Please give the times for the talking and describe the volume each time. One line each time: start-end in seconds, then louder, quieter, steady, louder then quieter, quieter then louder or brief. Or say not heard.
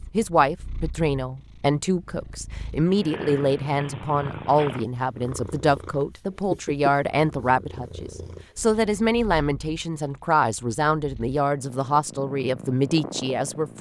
0.1-13.7 steady.